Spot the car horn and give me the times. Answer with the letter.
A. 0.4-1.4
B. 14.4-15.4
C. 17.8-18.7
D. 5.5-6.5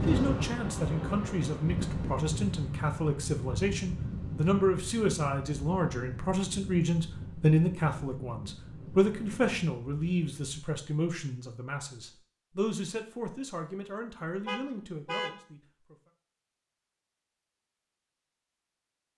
B.